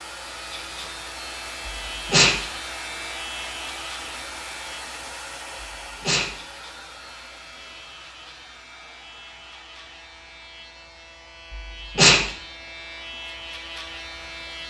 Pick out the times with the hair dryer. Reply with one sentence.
The hair dryer can be heard from 0.0 to 14.6 s.